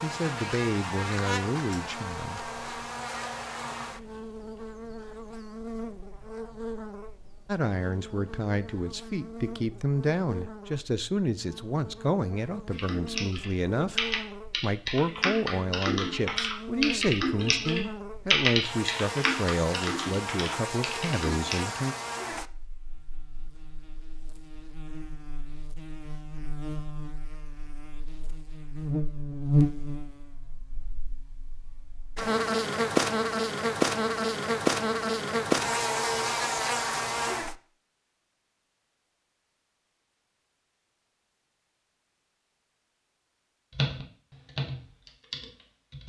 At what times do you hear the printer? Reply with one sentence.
The printer can't be heard in this clip.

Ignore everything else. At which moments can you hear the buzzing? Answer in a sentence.
The buzzing can be heard from 0.0 to 37.6 s.